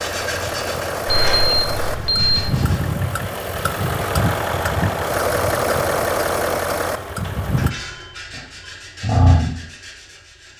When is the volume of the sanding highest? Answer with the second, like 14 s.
9 s.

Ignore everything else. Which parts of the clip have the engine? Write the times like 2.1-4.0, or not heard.
0.0-7.7.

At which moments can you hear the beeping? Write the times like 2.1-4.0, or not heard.
1.1-2.5, 7.2-8.8.